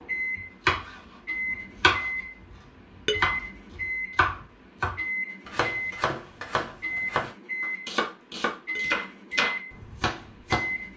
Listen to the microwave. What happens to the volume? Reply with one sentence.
The volume of the microwave stays about the same.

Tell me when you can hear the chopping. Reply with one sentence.
You can hear the chopping from 0.0 to 1.0 s, from 1.8 to 2.5 s and from 3.1 to 10.7 s.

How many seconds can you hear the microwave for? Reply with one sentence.
The microwave can be heard for 11 seconds in total.